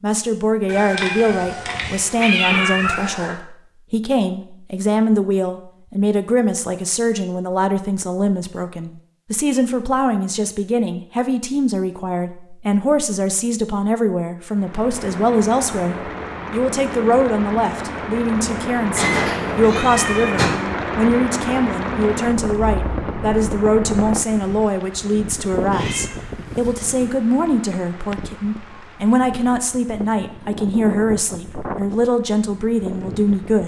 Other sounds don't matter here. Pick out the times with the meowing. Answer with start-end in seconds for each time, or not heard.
0.7-3.4, 18.9-20.5, 25.7-27.1.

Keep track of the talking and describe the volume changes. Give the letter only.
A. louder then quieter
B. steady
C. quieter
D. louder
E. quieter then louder
B.